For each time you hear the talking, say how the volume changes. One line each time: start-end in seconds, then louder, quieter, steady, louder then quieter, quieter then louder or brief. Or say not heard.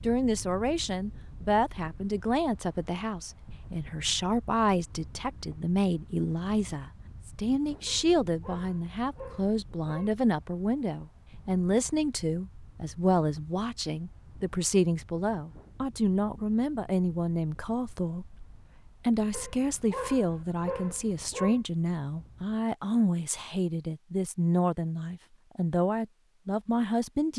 0.0-27.3 steady.